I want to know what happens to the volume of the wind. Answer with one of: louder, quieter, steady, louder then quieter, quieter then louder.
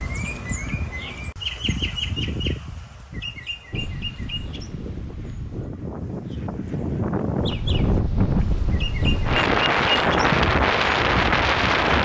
louder.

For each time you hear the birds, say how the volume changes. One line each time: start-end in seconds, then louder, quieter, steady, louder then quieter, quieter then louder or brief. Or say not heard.
0.0-11.9 quieter then louder.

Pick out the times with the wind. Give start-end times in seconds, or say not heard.
3.7-11.9.